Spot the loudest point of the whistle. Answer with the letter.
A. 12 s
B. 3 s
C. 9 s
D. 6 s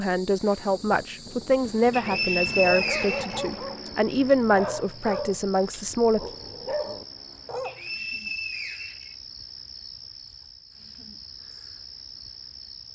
B.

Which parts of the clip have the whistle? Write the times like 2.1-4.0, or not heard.
1.9-3.9, 7.7-9.2.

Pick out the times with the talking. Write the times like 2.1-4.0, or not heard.
0.0-6.2.